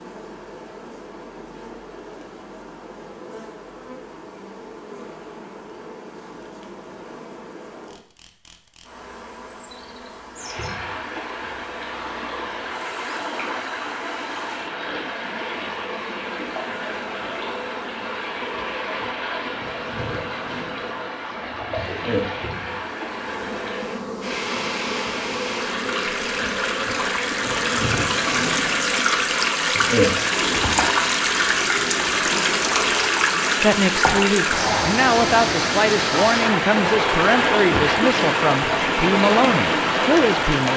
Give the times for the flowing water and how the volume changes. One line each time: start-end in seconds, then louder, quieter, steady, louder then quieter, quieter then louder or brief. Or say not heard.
10.3-40.7 louder.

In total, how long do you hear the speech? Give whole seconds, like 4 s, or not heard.
7 s.